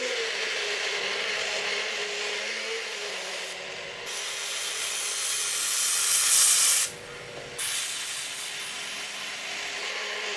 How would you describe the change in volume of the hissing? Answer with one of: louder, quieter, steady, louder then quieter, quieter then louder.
louder then quieter.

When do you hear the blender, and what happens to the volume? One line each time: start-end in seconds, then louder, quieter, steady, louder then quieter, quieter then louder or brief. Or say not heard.
0.0-10.3 quieter then louder.